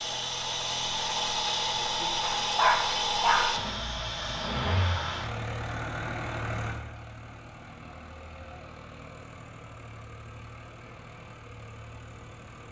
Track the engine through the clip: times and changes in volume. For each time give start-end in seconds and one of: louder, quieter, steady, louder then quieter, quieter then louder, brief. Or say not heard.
0.0-12.6 quieter.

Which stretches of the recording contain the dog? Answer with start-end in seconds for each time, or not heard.
2.2-3.5.